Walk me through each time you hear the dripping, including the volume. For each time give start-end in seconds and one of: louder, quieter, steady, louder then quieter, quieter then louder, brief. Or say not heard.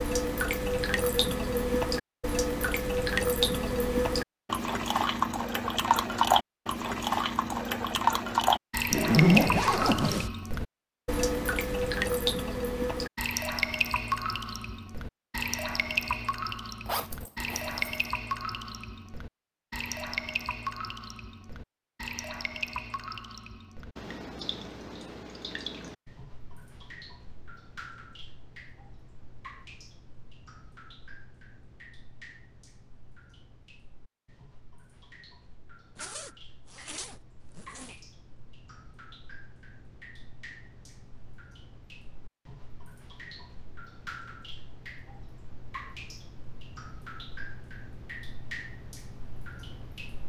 0.0-50.2 quieter then louder.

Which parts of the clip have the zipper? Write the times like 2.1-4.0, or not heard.
8.9-10.3, 16.9-18.1, 36.0-38.0.